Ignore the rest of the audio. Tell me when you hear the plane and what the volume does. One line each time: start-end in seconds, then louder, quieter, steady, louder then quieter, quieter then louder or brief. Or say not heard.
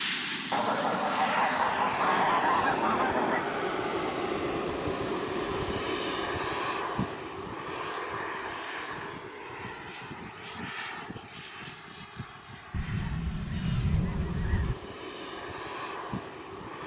0.0-16.8 quieter.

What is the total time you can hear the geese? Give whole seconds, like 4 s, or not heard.
5 s.